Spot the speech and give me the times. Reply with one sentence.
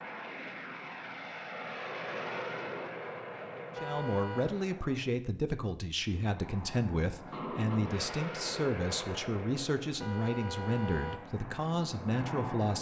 The speech can be heard from 3.8 to 12.7 s.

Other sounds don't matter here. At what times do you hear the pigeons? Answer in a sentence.
You can't hear the pigeons here.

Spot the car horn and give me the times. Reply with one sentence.
The car horn can be heard from 3.8 to 4.5 s and from 10.0 to 11.3 s.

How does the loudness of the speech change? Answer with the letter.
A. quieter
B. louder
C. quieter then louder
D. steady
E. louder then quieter
D.